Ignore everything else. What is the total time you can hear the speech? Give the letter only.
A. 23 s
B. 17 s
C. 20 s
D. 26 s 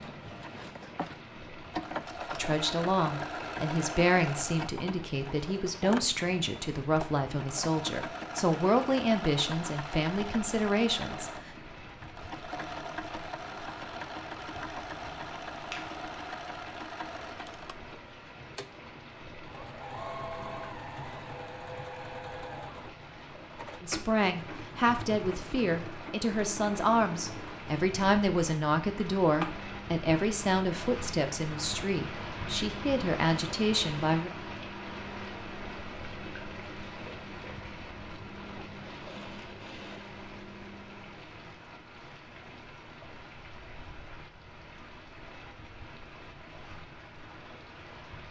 C.